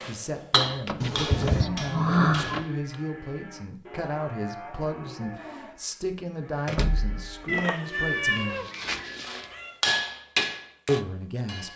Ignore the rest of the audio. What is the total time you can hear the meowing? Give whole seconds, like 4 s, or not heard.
3 s.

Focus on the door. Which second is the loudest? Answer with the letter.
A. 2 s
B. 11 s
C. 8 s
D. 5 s
A.